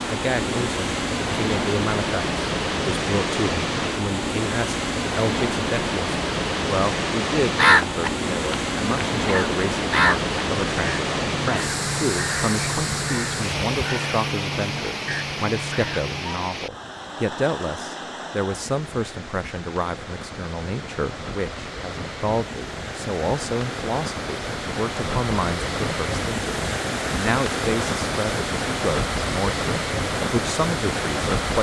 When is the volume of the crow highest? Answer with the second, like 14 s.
8 s.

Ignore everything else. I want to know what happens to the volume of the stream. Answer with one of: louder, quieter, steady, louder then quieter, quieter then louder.
quieter then louder.